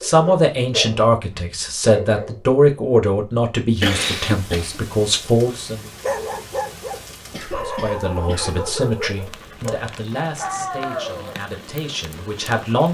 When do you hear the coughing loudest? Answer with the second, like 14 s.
4 s.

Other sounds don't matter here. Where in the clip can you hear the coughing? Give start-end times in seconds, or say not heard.
3.8-4.8, 7.3-8.7.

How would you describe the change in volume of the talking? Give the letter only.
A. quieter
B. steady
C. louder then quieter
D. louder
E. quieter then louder
A.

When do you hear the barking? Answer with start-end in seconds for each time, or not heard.
0.0-2.4, 5.5-11.4.